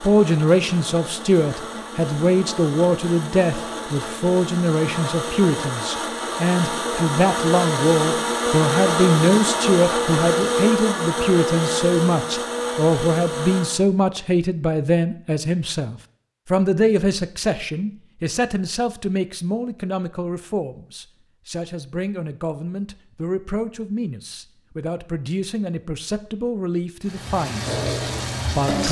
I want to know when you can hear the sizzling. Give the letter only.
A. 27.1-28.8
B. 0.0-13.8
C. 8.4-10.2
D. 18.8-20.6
A.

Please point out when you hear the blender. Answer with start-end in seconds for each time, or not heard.
0.0-13.8.